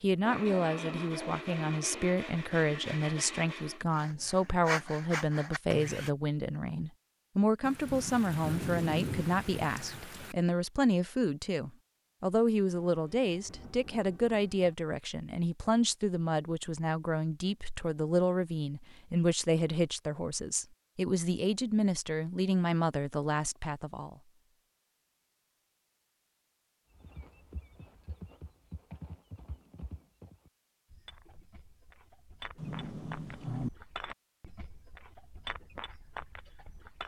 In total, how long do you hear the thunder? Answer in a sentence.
The thunder can be heard for 6 seconds in total.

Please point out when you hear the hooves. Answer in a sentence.
The hooves can be heard from 26.9 to 37.0 s.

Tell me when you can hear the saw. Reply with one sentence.
The saw can be heard from 0.2 to 6.1 s.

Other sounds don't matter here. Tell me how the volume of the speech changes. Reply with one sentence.
The loudness of the speech stays about the same.